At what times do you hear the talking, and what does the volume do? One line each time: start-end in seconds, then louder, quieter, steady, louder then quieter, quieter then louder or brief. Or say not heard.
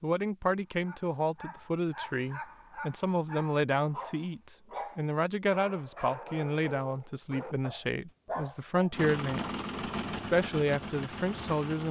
0.0-11.8 steady.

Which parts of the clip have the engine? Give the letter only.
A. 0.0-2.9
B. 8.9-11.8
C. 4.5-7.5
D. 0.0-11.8
B.